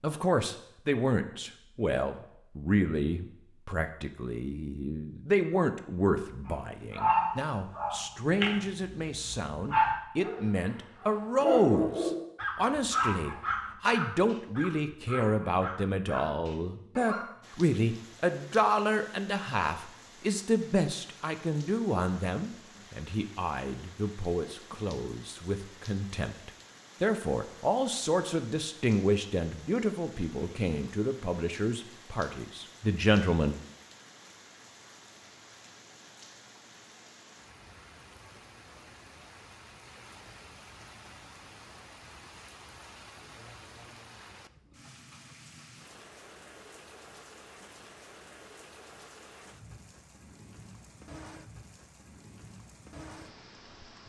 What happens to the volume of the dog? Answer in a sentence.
The volume of the dog goes down.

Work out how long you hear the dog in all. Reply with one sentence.
The dog can be heard for 11 seconds in total.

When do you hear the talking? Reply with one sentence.
The talking can be heard from 0.0 to 33.5 s.